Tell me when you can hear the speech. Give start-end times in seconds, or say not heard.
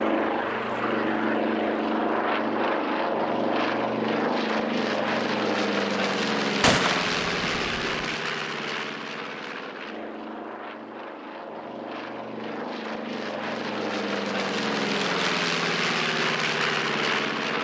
not heard.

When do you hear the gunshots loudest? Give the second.
7 s.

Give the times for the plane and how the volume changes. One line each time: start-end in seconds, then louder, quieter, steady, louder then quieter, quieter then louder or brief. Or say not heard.
0.0-17.5 quieter then louder.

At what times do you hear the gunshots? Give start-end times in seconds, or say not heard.
6.6-8.2.